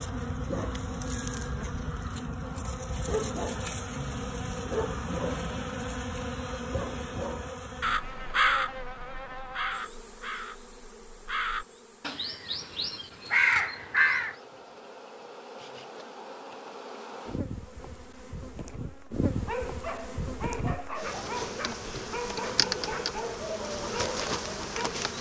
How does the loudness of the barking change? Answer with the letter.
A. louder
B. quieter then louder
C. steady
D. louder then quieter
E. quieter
C.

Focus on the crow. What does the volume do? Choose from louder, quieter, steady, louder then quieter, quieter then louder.
quieter then louder.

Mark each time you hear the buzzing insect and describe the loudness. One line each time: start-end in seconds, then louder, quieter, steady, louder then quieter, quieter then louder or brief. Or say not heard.
0.0-25.1 quieter then louder.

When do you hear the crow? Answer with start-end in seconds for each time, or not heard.
7.8-14.3.